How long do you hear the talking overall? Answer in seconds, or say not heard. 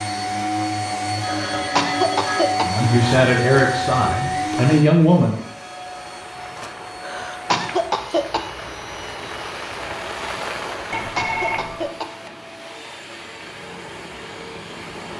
3 s.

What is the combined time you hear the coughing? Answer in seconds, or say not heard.
4 s.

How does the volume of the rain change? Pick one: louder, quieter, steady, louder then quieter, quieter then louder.
louder then quieter.